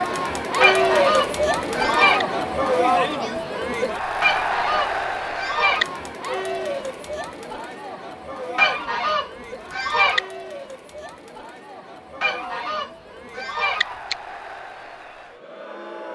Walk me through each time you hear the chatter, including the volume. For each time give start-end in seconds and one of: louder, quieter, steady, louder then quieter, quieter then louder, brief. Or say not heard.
0.0-16.1 quieter.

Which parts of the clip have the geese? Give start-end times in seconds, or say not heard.
0.6-2.2, 4.2-5.8, 8.6-10.2, 12.2-14.2.